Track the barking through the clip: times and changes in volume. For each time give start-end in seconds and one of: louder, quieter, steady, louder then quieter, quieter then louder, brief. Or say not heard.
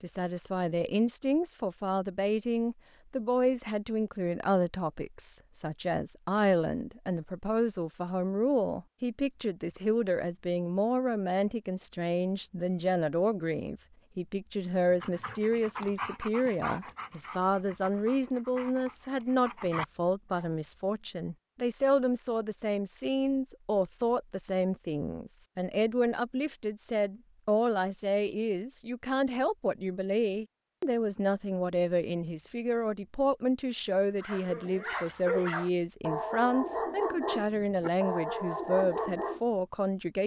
14.9-20.5 quieter then louder
34.2-39.4 steady.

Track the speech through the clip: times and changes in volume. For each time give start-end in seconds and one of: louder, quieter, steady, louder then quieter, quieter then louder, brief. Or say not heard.
0.0-40.2 steady.